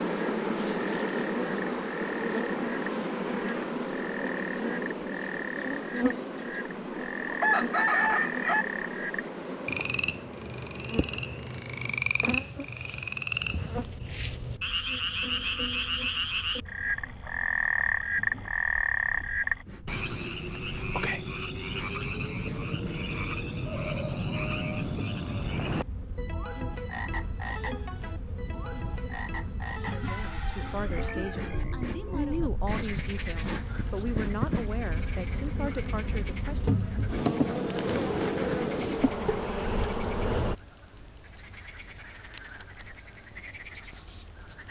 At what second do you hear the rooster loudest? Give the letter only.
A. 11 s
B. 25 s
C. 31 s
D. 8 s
D.